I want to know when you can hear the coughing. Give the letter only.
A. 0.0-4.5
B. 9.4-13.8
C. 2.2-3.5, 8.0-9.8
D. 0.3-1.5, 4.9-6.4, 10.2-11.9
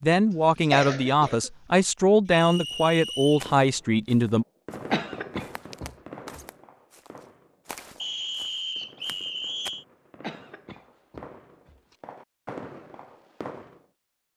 D.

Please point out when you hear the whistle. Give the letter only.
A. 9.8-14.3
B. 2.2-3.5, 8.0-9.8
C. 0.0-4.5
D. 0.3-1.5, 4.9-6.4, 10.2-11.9
B.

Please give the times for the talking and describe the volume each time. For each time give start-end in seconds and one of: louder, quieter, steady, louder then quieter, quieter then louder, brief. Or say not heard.
0.0-4.5 steady.